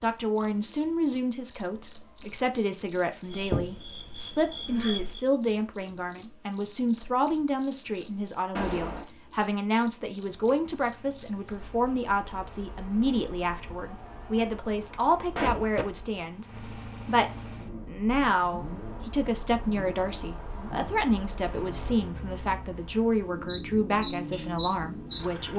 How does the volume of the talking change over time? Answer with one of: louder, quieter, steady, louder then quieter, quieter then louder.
steady.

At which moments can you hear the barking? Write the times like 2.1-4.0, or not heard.
not heard.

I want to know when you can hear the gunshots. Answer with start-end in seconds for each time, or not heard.
8.6-9.1, 13.9-15.8.